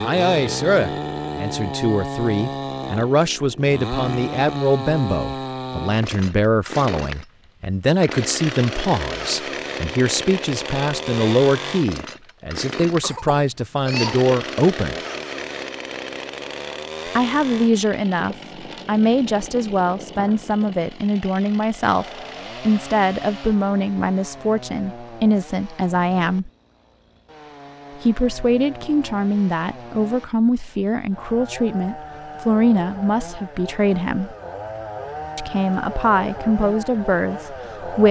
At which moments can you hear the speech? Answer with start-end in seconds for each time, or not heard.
0.0-14.9, 17.1-26.5, 28.0-34.4, 35.4-38.0.